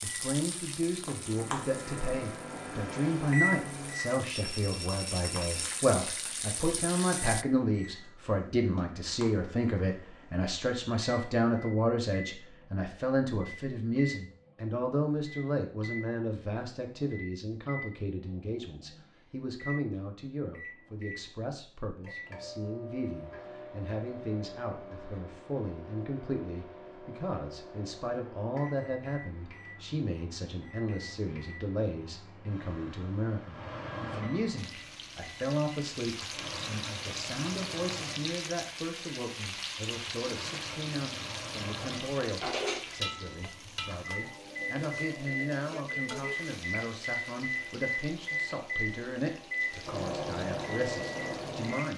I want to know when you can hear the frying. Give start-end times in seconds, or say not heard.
0.0-7.5, 34.5-51.9.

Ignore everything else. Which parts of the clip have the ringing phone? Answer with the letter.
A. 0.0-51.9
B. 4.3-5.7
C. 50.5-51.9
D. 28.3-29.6
B.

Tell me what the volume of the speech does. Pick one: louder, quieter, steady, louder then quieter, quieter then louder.
quieter.